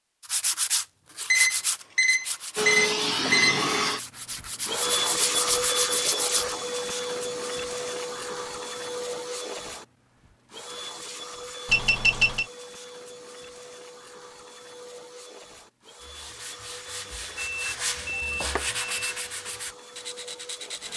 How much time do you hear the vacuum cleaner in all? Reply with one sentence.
The vacuum cleaner can be heard for 18 seconds in total.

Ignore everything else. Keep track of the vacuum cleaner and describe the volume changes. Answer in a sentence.
The volume of the vacuum cleaner goes down.